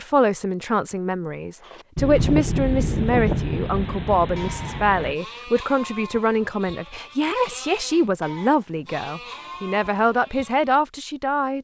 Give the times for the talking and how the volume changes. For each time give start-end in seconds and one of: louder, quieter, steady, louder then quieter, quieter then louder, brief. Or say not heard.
0.0-11.5 steady.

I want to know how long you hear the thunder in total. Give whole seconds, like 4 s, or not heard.
3 s.